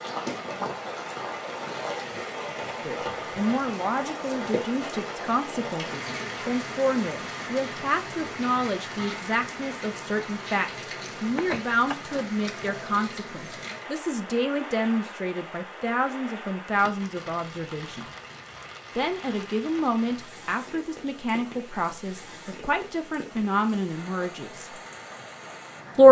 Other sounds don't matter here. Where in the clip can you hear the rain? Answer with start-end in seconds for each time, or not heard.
0.0-26.0.